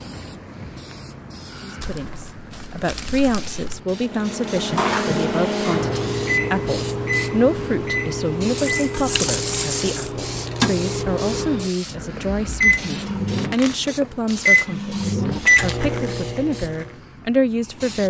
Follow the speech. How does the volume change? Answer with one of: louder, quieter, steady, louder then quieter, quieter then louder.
steady.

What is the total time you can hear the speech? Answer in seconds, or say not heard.
16 s.